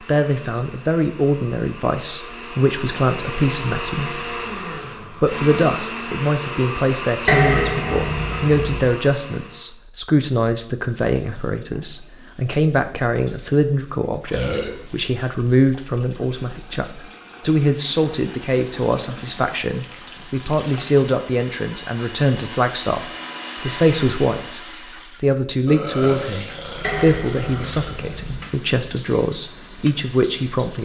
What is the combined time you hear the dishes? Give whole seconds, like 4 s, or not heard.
3 s.